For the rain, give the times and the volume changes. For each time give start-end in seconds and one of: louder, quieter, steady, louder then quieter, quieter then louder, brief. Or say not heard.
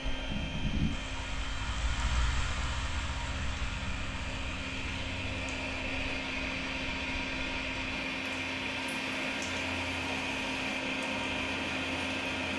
0.0-12.5 quieter then louder.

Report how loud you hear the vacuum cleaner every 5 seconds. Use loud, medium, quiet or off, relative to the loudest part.
medium, loud, loud.